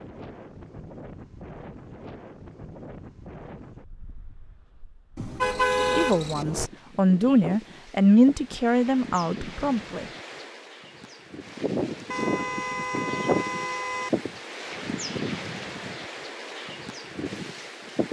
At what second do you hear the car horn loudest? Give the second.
6 s.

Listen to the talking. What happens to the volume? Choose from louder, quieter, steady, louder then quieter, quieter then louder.
louder then quieter.